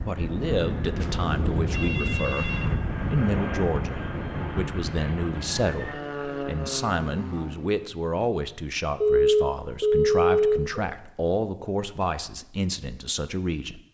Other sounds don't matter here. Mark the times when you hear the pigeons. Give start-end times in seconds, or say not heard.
not heard.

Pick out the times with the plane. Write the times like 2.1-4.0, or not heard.
0.0-7.9.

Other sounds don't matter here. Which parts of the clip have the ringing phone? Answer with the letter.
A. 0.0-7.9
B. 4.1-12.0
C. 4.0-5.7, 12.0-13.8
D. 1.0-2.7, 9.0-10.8
D.